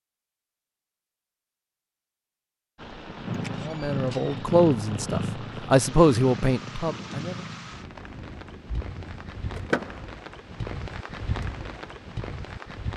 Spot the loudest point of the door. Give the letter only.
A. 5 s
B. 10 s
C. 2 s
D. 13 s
B.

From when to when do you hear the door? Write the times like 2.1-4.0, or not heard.
3.3-4.4, 9.5-10.1.